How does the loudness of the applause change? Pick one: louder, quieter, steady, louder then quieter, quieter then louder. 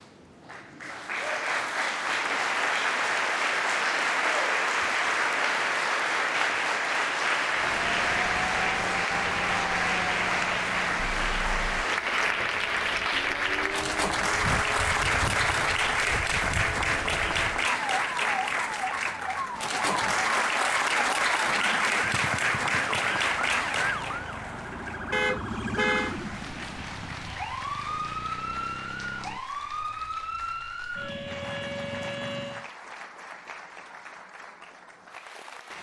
quieter.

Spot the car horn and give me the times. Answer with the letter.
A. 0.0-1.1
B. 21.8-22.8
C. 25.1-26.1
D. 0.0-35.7
C.